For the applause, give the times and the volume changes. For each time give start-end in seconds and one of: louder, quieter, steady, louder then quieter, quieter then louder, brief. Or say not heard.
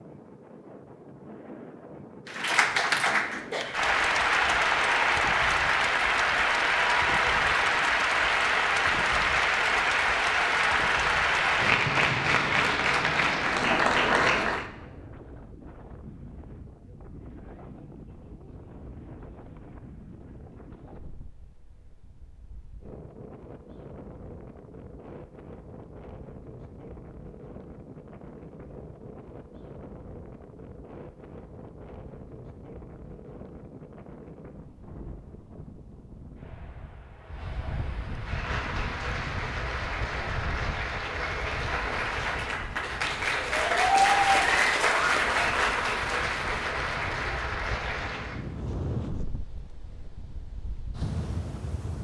2.2-14.7 steady
38.1-48.4 louder then quieter.